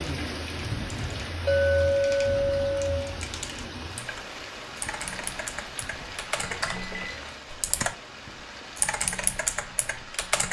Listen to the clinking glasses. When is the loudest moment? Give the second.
2 s.